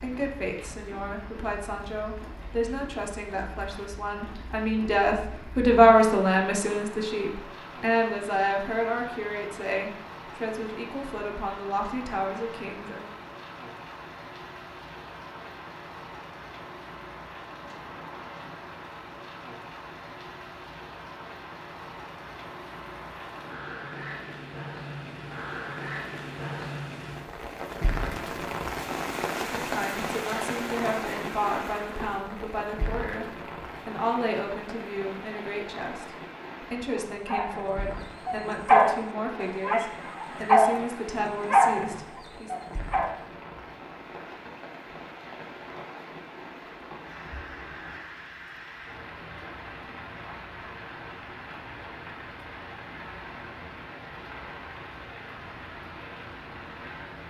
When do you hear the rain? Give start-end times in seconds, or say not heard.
0.0-57.2.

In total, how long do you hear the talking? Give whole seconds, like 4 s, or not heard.
26 s.